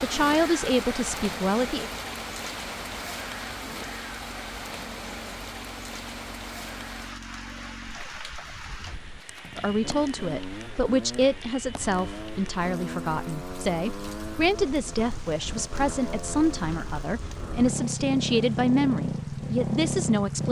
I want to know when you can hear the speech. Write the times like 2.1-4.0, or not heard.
0.0-1.9, 9.6-20.4.